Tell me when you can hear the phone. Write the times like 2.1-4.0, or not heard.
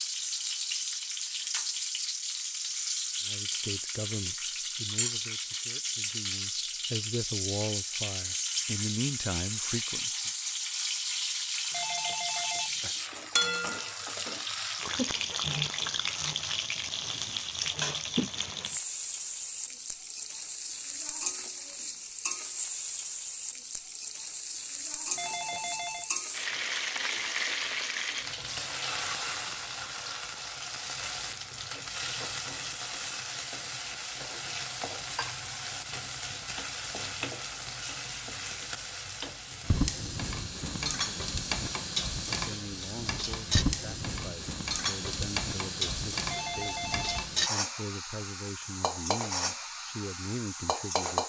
11.7-12.9, 25.1-26.1, 46.2-47.4.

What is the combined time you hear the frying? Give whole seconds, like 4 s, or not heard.
51 s.